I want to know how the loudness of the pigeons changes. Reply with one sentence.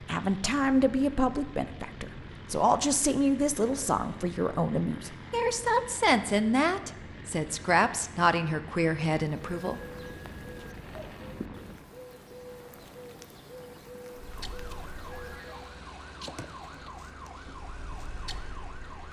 The loudness of the pigeons stays about the same.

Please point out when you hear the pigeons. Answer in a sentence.
The pigeons can be heard from 9.3 to 15.6 s.